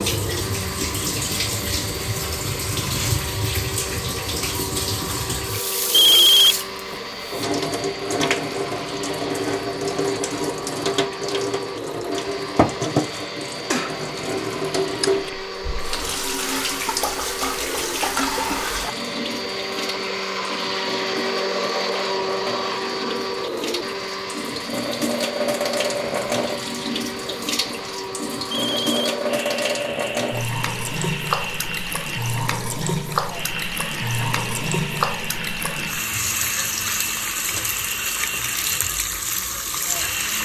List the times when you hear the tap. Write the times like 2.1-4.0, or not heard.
0.0-40.4.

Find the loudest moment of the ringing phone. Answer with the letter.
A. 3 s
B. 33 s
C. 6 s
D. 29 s
C.